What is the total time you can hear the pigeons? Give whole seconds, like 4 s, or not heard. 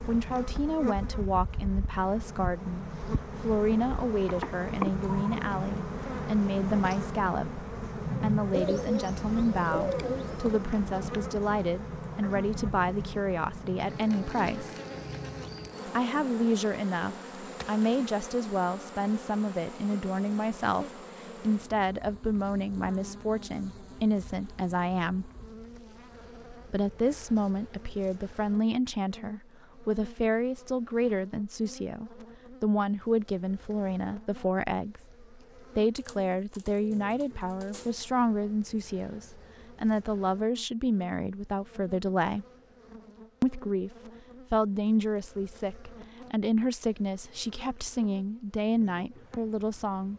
4 s.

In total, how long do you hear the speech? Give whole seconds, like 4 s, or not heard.
45 s.